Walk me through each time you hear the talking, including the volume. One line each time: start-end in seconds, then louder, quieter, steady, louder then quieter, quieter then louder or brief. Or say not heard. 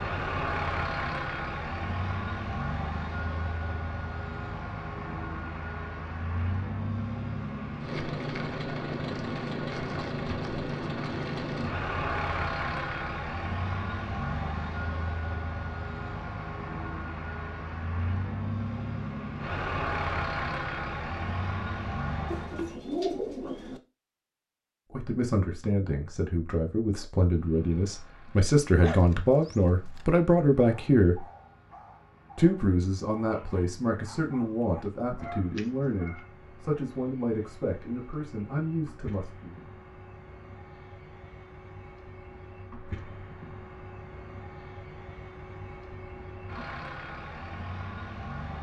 24.9-31.2 louder
32.4-39.6 steady.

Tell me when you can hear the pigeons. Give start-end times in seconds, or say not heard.
22.2-23.8.